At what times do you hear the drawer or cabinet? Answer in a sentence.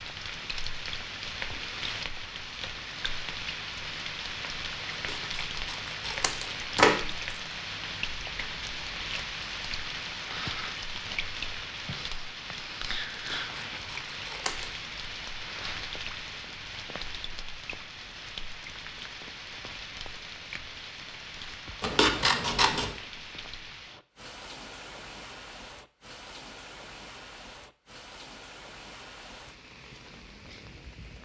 The drawer or cabinet can't be heard in this clip.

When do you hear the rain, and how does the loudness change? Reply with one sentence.
The rain can be heard from 0.0 to 31.2 s, getting quieter.